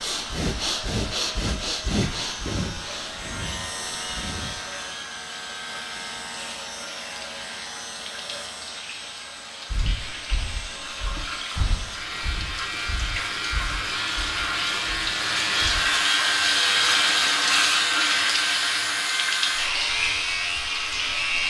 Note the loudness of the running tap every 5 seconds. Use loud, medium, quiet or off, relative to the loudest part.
quiet, quiet, medium, loud, medium.